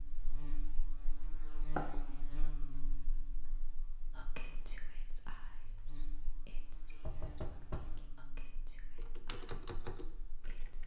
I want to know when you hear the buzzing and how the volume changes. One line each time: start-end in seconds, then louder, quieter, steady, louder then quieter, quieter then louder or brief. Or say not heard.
0.0-10.8 quieter.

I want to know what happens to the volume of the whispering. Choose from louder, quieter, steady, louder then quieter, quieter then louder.
quieter.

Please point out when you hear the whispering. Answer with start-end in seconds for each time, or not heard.
4.2-10.8.